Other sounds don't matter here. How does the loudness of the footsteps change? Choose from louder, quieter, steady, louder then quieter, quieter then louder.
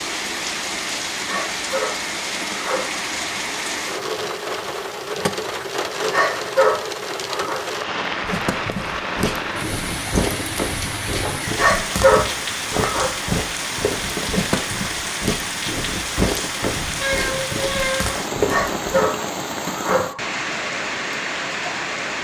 steady.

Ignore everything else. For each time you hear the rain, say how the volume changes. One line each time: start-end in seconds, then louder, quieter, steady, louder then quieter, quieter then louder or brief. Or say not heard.
0.0-22.2 steady.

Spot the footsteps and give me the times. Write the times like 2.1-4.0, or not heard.
8.1-19.1.